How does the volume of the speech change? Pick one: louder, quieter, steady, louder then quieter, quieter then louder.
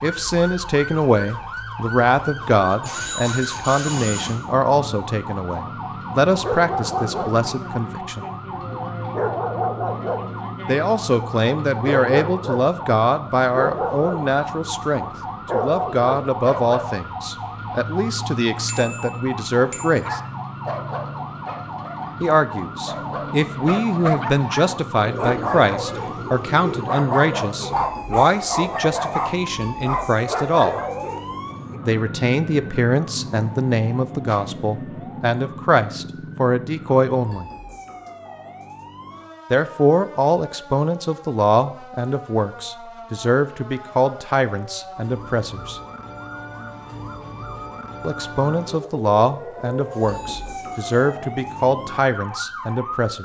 steady.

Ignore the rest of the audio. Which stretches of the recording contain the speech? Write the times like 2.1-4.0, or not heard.
0.0-8.2, 10.7-20.2, 22.2-30.8, 31.9-37.5, 39.5-45.8, 48.0-53.2.